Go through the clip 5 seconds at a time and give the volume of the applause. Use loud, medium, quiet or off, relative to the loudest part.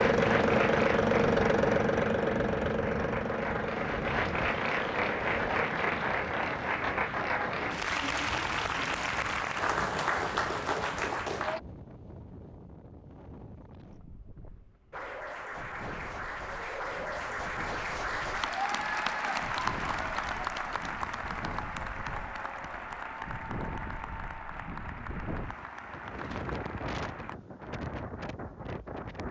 loud, loud, loud, loud, medium, quiet.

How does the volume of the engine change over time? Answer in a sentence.
The volume of the engine goes down.